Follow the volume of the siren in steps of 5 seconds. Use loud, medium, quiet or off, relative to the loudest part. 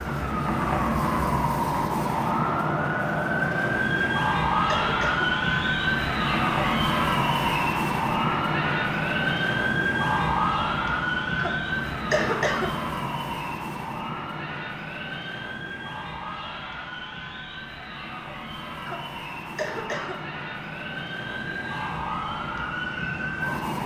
loud, loud, loud, quiet, medium.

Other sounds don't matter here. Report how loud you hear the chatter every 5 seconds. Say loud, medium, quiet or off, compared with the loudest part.
loud, loud, medium, medium, medium.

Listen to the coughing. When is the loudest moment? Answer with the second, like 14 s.
12 s.